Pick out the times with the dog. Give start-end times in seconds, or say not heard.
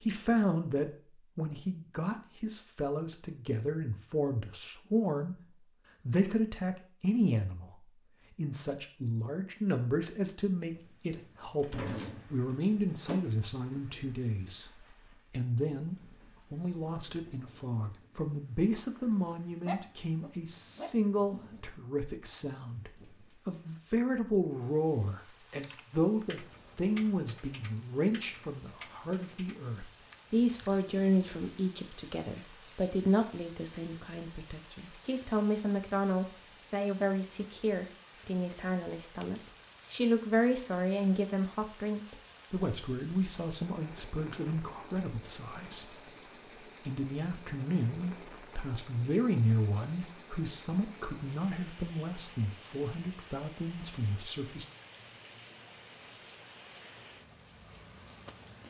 19.6-21.6.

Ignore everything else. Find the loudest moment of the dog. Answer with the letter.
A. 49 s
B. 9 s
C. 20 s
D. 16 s
C.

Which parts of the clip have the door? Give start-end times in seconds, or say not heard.
11.2-13.2.